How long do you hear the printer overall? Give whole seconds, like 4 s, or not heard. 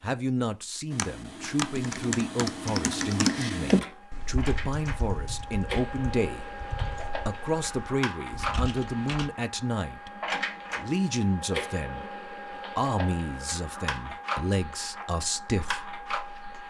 13 s.